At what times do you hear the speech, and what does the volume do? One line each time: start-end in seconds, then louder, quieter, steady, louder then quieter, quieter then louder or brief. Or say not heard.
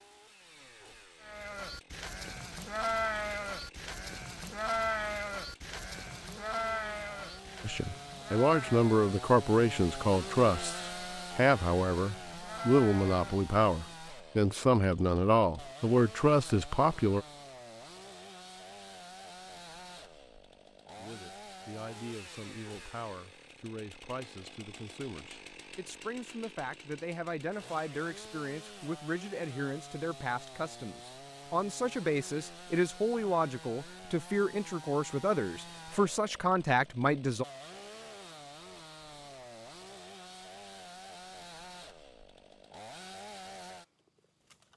7.6-17.2 steady
20.9-37.5 louder.